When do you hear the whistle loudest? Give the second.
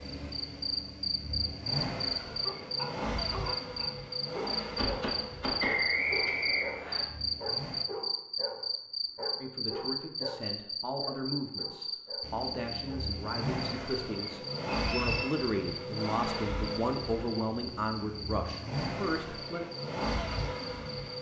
6 s.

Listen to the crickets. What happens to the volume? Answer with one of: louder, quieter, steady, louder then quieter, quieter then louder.
quieter.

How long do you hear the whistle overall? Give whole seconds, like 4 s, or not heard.
2 s.